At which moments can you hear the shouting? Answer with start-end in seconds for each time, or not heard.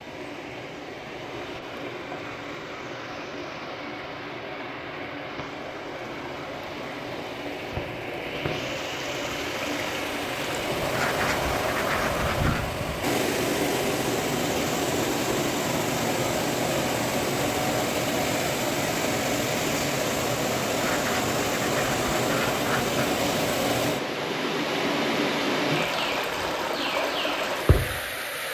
not heard.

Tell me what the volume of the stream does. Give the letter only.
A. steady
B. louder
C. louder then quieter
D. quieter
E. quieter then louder
B.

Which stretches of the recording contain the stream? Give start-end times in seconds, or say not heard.
0.0-28.4.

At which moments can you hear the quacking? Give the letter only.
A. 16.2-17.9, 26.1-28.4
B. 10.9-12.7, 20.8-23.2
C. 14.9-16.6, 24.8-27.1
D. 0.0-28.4
B.